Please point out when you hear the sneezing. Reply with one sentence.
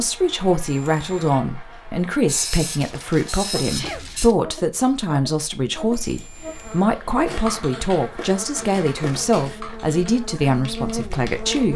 The sneezing can be heard from 3.5 to 4.1 s.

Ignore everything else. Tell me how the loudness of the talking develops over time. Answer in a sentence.
The volume of the talking stays about the same.